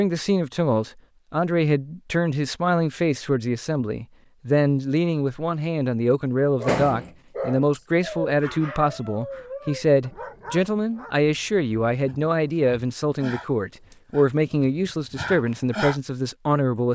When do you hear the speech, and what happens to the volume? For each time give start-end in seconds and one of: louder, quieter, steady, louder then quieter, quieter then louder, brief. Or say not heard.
0.0-16.9 steady.